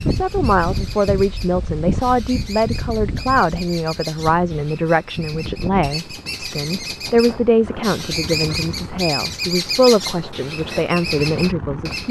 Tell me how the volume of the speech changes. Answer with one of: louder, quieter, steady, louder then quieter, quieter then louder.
steady.